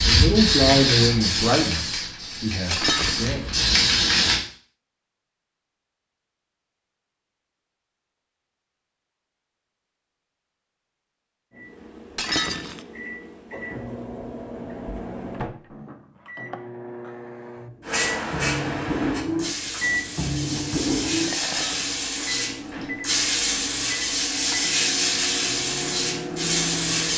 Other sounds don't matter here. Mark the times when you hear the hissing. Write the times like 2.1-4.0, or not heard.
0.0-4.4, 17.9-27.1.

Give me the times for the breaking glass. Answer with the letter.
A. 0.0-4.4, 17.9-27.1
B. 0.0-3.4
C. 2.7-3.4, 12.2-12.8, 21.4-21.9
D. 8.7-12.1
C.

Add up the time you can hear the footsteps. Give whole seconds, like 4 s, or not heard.
not heard.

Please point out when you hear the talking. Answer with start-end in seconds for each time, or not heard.
0.0-3.4.